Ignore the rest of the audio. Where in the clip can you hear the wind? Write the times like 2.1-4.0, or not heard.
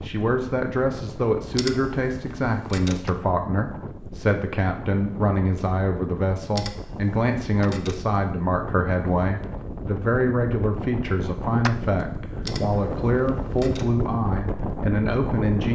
0.0-15.7.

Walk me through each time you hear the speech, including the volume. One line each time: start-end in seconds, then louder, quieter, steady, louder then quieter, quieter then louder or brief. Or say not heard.
0.0-15.7 steady.